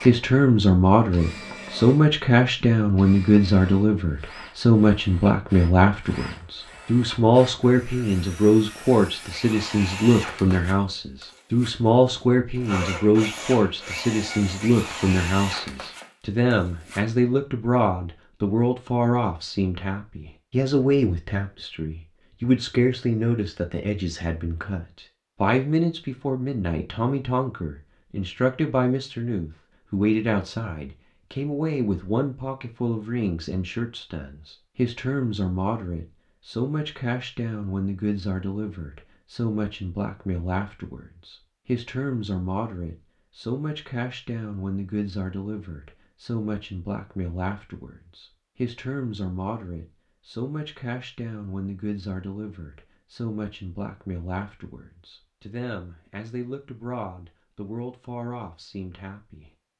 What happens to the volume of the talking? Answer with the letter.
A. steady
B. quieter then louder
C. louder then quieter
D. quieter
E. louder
D.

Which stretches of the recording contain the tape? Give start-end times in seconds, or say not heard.
not heard.